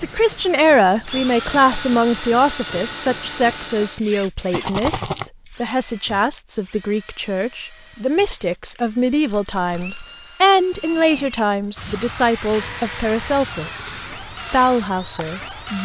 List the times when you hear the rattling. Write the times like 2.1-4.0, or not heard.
4.5-5.2, 9.3-10.1.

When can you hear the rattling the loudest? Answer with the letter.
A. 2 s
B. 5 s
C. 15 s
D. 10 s
B.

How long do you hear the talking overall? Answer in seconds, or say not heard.
16 s.